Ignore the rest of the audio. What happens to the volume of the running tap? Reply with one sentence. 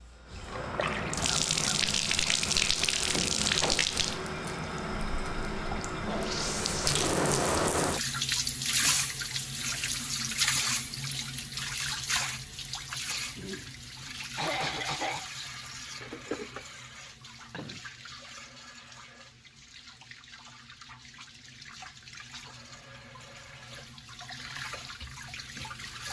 The loudness of the running tap goes down.